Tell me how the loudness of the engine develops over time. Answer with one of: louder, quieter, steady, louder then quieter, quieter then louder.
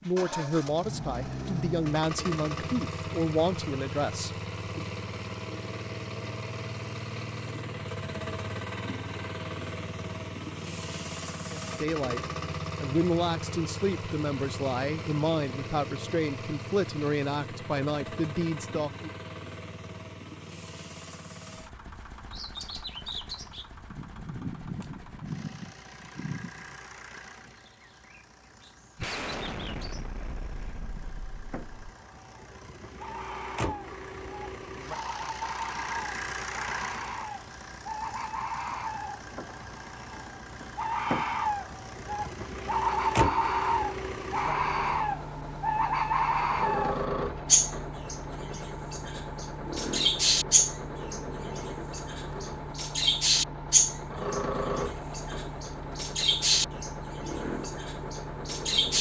quieter then louder.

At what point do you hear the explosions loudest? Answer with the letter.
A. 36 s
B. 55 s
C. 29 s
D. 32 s
C.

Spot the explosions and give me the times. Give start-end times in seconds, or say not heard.
28.9-31.9.